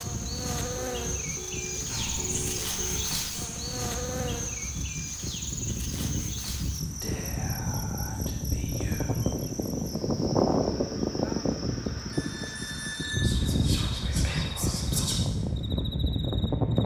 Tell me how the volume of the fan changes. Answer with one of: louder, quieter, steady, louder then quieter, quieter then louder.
louder.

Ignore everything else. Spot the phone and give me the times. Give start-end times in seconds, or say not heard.
0.8-3.0, 12.1-13.4.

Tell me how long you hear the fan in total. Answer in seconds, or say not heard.
17 s.